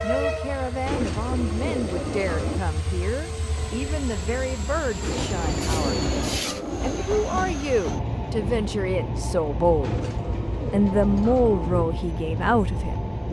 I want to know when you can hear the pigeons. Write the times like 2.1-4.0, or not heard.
0.8-2.6, 5.0-7.0, 9.8-11.8.